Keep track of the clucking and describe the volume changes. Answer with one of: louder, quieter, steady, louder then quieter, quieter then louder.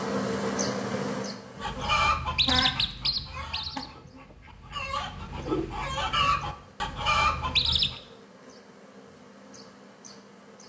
quieter then louder.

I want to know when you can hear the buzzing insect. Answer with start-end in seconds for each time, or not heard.
0.0-2.8, 3.8-10.6.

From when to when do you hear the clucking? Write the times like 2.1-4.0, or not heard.
1.6-8.0.